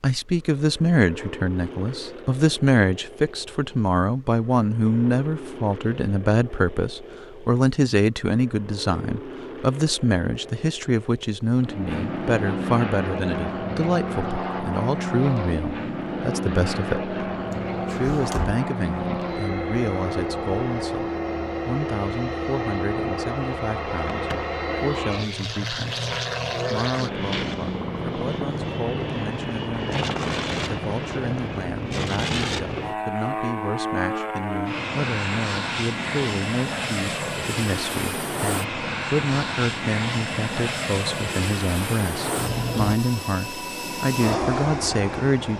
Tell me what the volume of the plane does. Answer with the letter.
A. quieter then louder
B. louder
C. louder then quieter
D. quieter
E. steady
B.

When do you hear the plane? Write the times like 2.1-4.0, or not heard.
0.1-45.5.